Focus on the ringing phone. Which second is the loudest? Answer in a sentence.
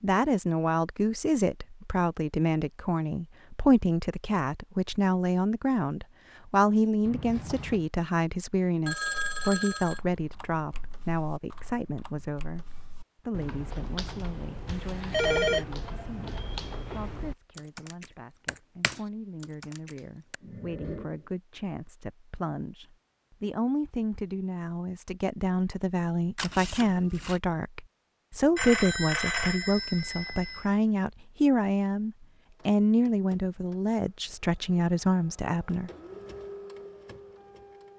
The volume of the ringing phone peaks at 15 seconds.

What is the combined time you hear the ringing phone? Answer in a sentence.
The ringing phone can be heard for 4 seconds in total.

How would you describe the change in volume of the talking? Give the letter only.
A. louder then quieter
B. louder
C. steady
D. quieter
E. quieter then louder
E.